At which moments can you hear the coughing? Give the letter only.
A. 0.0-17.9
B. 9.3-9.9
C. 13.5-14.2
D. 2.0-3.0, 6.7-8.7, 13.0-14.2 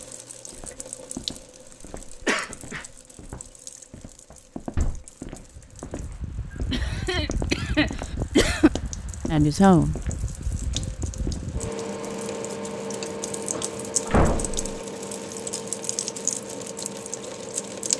D.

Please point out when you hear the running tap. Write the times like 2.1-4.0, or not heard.
0.0-17.9.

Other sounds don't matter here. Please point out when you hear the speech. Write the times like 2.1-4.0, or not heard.
9.3-9.9.